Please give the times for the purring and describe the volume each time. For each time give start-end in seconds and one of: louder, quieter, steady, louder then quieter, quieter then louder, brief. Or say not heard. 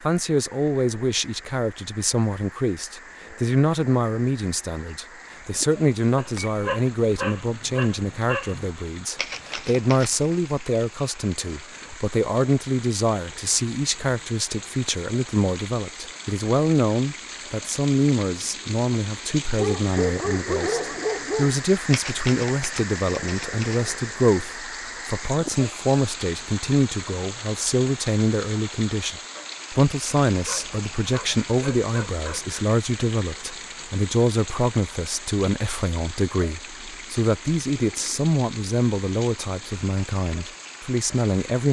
not heard.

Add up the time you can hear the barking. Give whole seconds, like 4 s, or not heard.
7 s.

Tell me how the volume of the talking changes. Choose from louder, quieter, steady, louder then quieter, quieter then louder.
steady.